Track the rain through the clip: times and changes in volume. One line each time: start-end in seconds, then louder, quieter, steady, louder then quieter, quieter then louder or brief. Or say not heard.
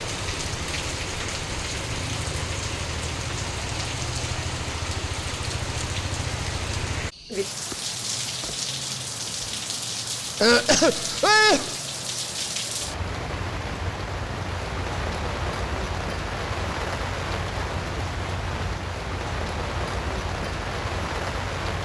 0.0-21.8 steady.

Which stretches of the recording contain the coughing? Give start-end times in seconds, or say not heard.
10.4-11.8.